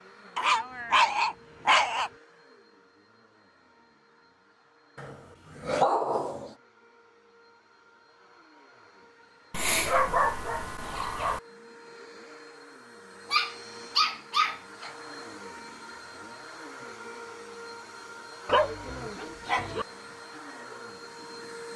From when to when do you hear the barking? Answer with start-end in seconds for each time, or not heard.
0.3-2.1, 5.0-6.5, 9.5-11.4, 13.3-14.9, 18.4-19.9.